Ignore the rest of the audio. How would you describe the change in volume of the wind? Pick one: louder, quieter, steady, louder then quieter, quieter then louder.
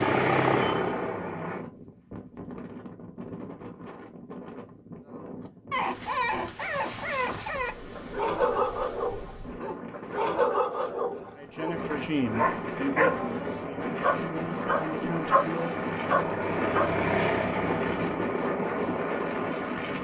louder.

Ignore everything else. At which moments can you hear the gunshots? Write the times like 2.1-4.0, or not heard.
not heard.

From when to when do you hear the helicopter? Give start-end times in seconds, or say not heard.
0.0-1.6, 11.7-20.0.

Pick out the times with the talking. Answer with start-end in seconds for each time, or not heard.
11.3-15.8.